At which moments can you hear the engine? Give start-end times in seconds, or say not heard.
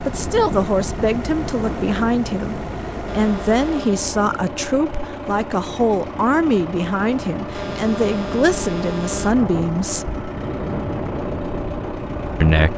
0.0-12.7.